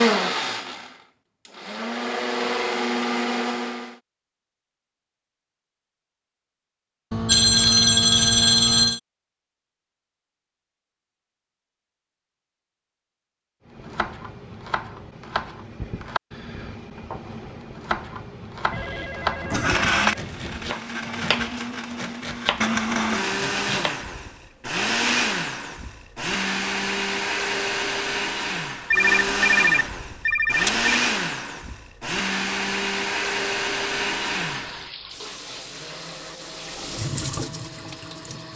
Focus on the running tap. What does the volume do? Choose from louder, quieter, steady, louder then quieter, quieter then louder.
louder then quieter.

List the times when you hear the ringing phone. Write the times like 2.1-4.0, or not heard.
7.1-9.0, 18.7-20.8, 28.9-30.9.